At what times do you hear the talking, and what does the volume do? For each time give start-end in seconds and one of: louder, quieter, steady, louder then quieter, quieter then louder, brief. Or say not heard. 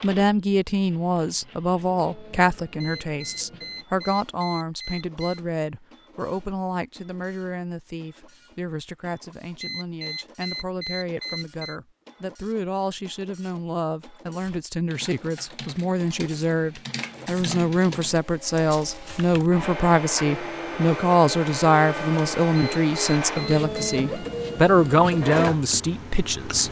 0.0-26.6 quieter then louder.